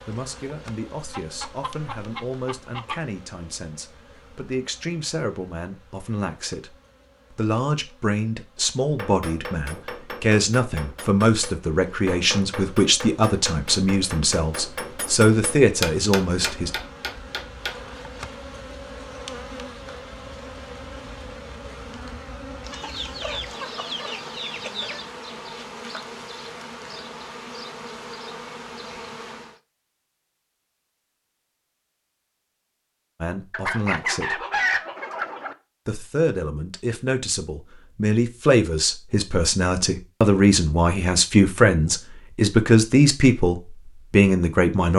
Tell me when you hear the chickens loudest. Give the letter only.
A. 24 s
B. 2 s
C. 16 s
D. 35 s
D.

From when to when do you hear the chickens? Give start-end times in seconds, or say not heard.
1.1-3.0, 22.6-25.1, 33.5-35.5.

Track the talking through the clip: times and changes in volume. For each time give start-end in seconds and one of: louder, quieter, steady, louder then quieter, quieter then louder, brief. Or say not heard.
0.0-16.7 louder
33.2-34.5 brief
35.9-44.9 louder.